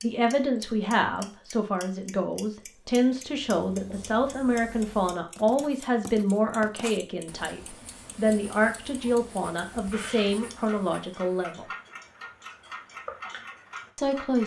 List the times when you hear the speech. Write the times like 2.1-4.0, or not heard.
0.0-11.7, 13.9-14.4.